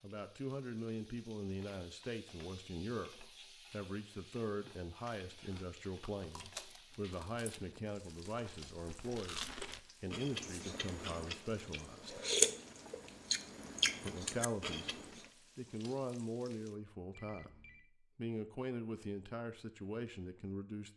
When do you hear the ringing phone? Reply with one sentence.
You can hear the ringing phone from 17.1 to 17.9 s.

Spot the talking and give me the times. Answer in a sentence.
The talking can be heard from 0.0 to 12.2 s and from 14.0 to 20.9 s.